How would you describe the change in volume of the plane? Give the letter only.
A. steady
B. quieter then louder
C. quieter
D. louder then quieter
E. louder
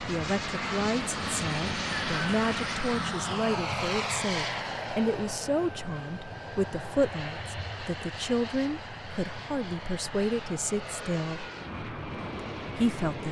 C.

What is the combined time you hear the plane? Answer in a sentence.
You can hear the plane for 13 seconds altogether.